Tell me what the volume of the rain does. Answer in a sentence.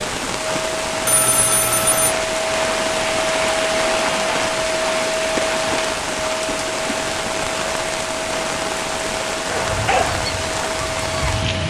The loudness of the rain stays about the same.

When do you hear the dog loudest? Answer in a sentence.
The volume of the dog peaks at 10 seconds.